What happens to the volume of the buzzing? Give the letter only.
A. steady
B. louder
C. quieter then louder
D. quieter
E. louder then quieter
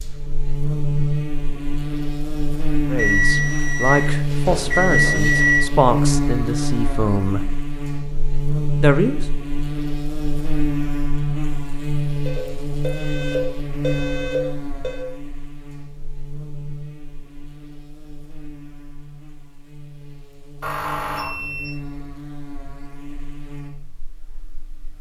D.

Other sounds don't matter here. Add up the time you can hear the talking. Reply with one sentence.
You can hear the talking for 5 seconds altogether.